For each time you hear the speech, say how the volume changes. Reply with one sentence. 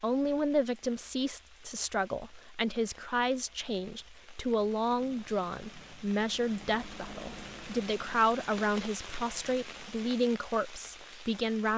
The speech can be heard from 0.0 to 11.7 s, at a steady volume.